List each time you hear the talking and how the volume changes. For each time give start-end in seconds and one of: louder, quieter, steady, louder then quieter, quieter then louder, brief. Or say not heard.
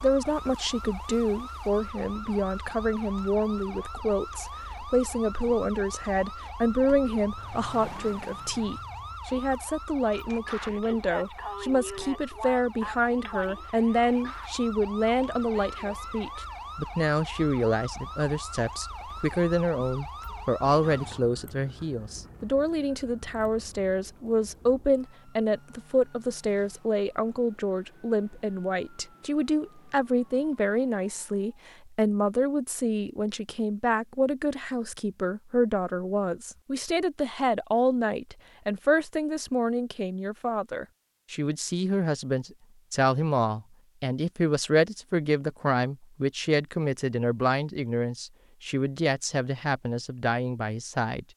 0.0-51.2 steady.